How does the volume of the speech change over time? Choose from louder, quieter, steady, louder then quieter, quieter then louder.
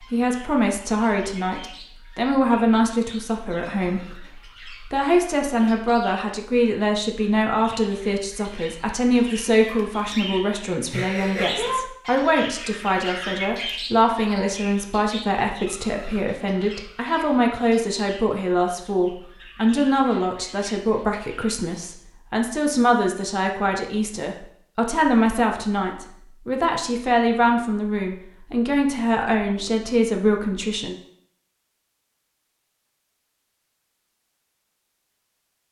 steady.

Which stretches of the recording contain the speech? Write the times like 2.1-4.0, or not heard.
0.1-30.9.